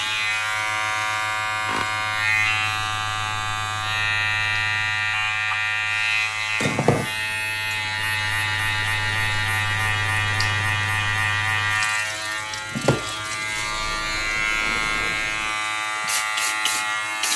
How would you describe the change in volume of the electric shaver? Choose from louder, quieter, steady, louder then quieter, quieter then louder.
steady.